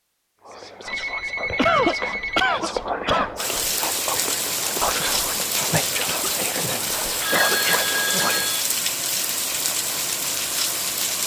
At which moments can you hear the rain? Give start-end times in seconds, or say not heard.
3.4-11.2.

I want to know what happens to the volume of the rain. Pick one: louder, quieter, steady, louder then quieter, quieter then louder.
steady.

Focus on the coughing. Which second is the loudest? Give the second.
2 s.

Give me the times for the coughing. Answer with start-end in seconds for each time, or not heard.
1.6-3.3, 5.9-7.8.